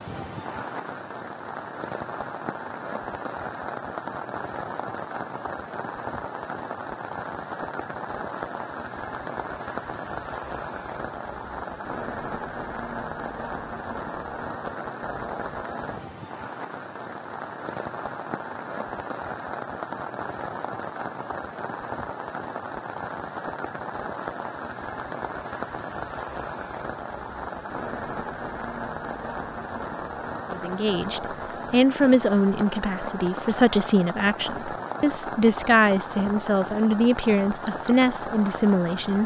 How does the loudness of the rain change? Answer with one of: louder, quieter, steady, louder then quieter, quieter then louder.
steady.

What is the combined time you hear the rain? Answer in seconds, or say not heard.
39 s.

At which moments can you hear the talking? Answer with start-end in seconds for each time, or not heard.
30.5-39.2.